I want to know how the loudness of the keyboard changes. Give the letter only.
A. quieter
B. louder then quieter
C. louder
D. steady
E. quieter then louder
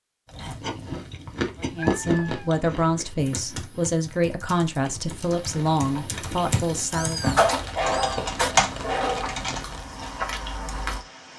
C.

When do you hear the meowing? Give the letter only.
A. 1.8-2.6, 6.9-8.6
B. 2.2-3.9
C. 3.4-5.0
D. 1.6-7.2
A.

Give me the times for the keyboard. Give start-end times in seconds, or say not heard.
3.1-9.7.